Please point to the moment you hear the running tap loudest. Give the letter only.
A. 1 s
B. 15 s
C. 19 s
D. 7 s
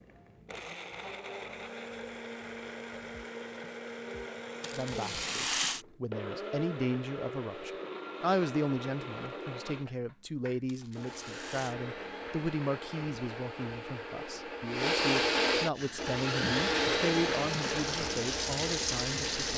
C.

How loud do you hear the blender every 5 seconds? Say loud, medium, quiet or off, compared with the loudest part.
medium, medium, medium, loud.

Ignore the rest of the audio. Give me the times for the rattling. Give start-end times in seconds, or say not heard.
4.6-5.8, 10.7-11.8.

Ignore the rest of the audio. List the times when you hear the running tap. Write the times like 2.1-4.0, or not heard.
15.7-19.5.